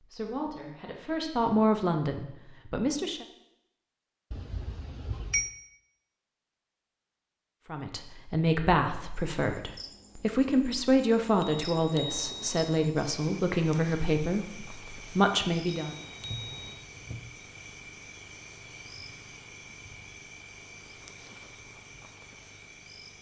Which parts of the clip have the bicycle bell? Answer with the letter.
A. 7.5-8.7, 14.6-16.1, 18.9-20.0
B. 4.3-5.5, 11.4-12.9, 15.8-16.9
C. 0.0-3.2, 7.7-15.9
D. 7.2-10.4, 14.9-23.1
B.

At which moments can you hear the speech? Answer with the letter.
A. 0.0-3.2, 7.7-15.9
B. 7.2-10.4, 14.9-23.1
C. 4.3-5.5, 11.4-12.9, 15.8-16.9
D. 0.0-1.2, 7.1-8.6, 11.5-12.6
A.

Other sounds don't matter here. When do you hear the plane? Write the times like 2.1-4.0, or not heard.
not heard.